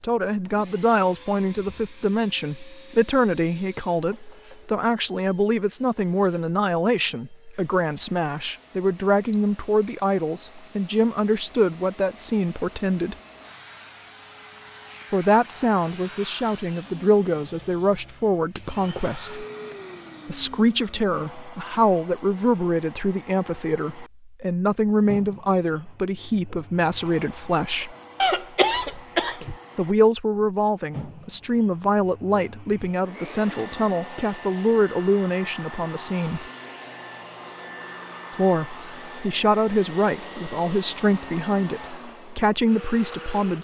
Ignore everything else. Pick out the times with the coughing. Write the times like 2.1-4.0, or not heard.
28.2-29.6.